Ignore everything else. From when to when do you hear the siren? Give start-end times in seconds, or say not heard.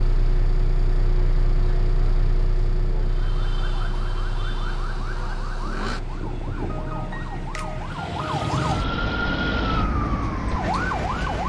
3.0-11.4.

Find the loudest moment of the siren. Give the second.
9 s.